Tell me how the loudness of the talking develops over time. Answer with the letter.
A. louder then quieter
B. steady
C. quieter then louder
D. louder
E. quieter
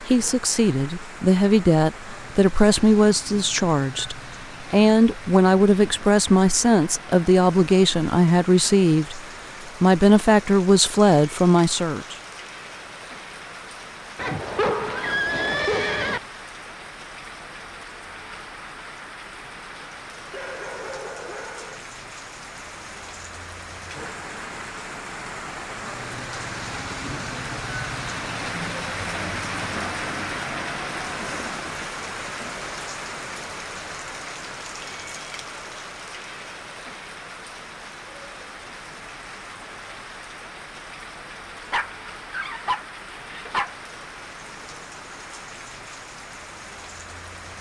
B.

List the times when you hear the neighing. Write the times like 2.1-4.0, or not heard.
14.2-16.2.